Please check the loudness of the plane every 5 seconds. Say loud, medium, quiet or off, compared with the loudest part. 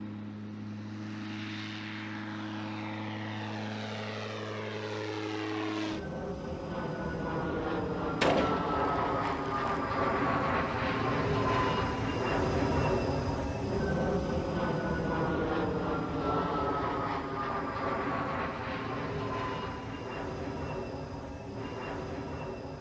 medium, loud, loud, loud, medium.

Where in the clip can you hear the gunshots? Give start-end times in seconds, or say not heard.
8.2-9.8.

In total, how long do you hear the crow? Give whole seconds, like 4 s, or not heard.
not heard.